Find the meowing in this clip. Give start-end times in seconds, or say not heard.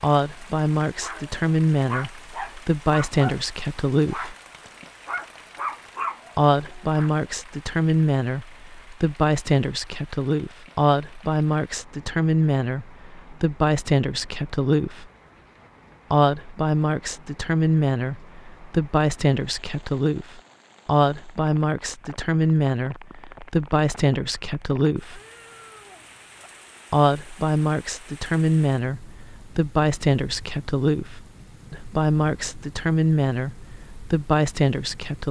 25.1-26.5.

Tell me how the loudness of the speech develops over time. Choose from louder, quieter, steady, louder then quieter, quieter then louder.
steady.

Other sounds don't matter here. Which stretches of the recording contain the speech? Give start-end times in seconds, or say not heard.
0.0-4.3, 6.3-15.1, 16.1-25.2, 26.9-35.2.